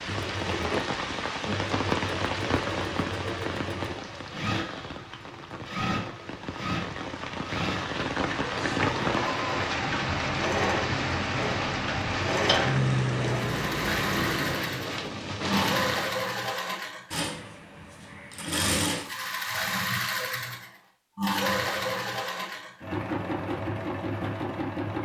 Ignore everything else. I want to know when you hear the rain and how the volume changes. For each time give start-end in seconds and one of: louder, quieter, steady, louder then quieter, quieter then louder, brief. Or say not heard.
0.0-16.2 quieter then louder.